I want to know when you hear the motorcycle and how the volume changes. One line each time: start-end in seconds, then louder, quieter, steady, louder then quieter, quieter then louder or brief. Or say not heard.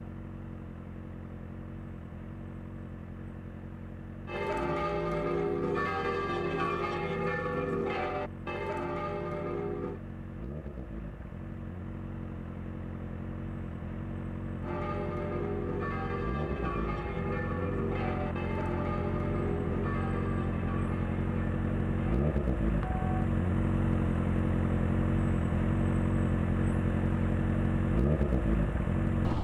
0.0-29.3 louder.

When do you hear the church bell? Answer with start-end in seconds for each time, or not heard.
4.2-10.0, 14.6-23.3.